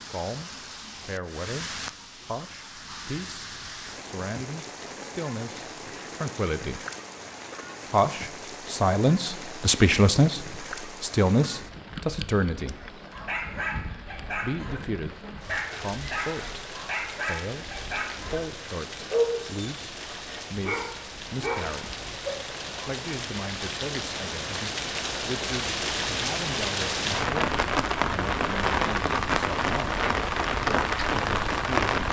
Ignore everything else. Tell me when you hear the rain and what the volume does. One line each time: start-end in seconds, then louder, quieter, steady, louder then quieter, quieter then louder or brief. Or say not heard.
0.0-32.0 louder.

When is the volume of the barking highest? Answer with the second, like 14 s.
19 s.